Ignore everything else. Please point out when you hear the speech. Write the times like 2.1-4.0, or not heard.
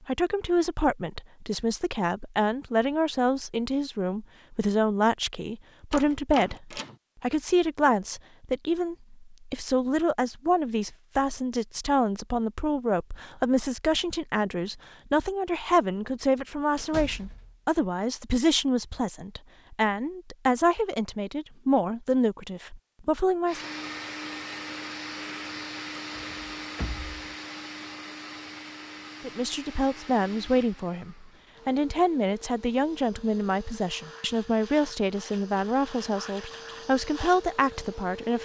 0.1-23.6, 29.2-38.3.